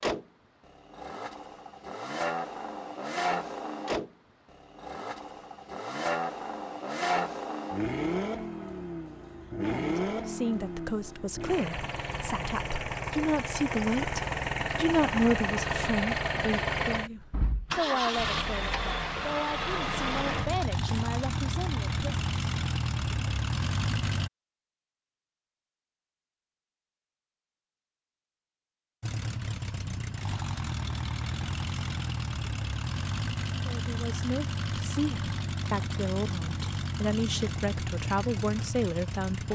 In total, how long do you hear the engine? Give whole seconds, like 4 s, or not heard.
35 s.